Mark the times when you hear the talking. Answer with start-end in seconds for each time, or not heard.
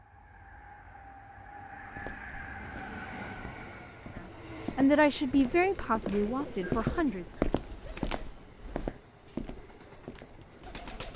4.2-7.2.